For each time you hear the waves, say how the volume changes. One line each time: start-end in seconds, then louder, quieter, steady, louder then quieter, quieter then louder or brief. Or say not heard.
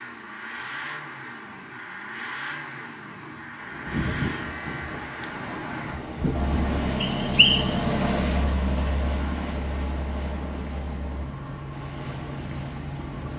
3.5-13.3 quieter.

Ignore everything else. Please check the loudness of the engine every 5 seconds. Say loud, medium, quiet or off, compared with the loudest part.
medium, loud, medium.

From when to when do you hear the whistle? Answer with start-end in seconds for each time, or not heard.
7.0-7.8.